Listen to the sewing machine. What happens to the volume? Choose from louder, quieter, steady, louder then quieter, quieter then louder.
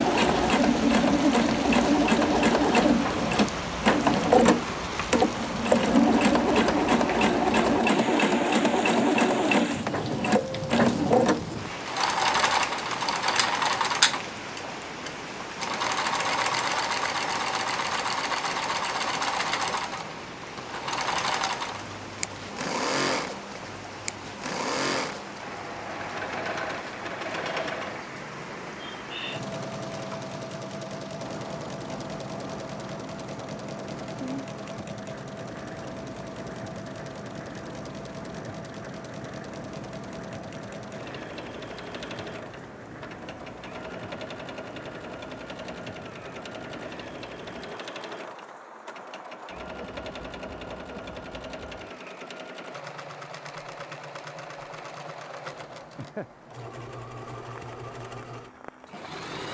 quieter.